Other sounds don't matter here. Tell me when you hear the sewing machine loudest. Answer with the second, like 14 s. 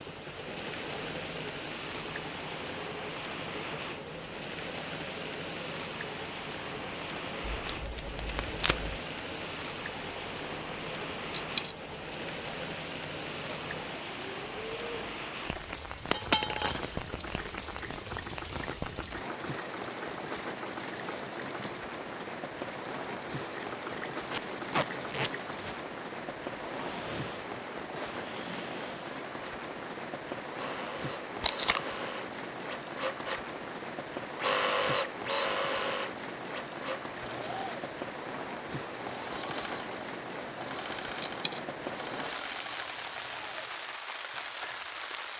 35 s.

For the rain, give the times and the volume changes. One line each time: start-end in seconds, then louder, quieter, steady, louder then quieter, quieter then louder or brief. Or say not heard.
0.0-45.3 steady.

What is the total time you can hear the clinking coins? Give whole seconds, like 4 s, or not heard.
2 s.